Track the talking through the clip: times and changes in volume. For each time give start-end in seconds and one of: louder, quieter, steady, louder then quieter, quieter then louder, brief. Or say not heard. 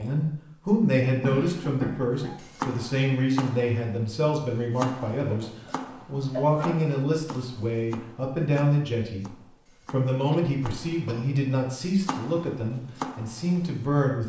0.0-14.2 steady.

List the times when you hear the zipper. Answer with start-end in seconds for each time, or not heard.
not heard.